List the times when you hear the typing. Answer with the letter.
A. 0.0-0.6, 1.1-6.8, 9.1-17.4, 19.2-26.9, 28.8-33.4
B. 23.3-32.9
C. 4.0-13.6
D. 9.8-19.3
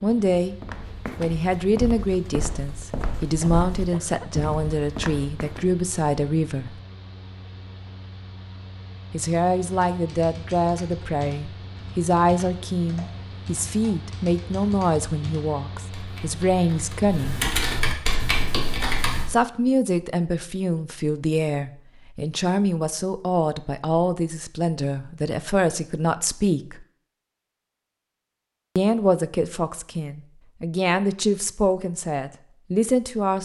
D.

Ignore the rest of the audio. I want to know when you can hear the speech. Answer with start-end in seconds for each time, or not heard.
0.0-0.6, 1.1-6.8, 9.1-17.4, 19.2-26.9, 28.8-33.4.